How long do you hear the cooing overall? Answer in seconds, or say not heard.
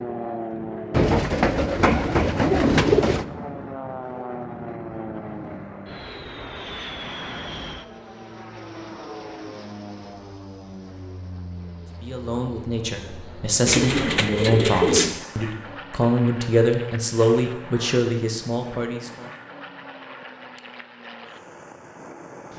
4 s.